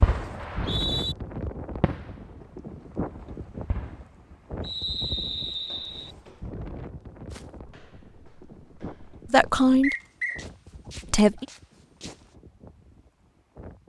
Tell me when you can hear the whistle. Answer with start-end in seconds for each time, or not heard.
0.3-1.1, 4.6-6.2, 9.8-10.4.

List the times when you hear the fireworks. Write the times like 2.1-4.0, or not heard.
0.0-0.8, 1.8-2.3, 3.0-4.0.